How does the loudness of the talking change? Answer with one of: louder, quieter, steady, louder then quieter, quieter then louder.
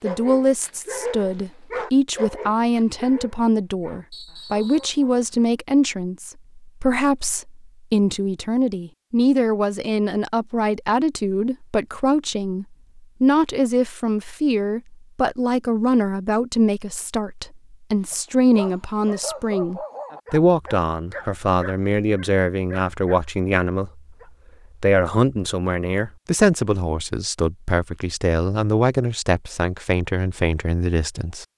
steady.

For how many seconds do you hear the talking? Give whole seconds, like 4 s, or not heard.
31 s.